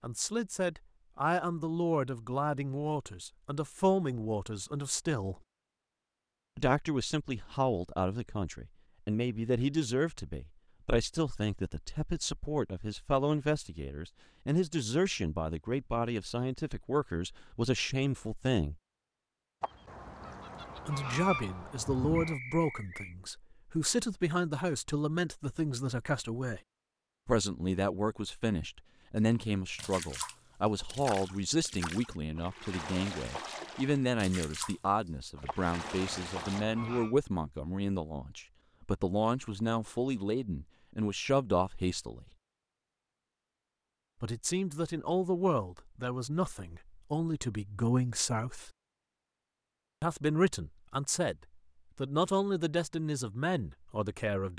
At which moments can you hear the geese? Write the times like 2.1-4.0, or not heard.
19.6-22.4, 35.5-37.1.